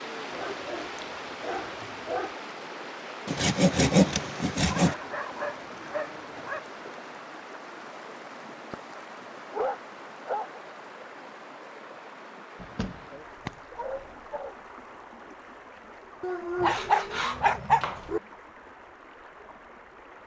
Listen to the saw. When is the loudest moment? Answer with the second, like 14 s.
4 s.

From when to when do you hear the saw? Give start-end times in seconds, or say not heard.
3.2-5.0, 16.6-18.1.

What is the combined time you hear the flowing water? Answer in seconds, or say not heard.
20 s.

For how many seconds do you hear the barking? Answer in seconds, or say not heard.
10 s.